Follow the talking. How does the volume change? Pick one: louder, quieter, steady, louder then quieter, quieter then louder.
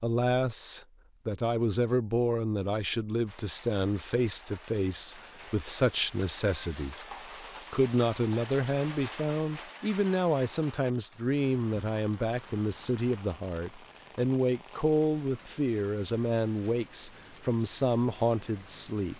steady.